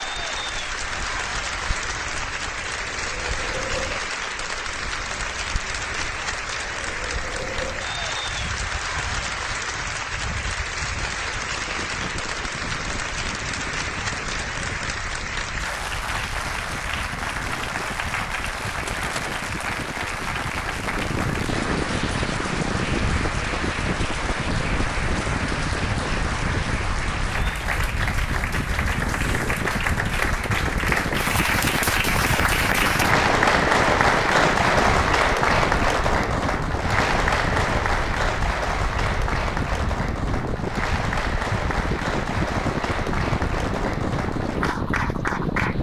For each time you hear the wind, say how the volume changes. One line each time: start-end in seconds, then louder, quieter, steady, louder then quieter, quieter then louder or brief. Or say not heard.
0.0-45.7 louder.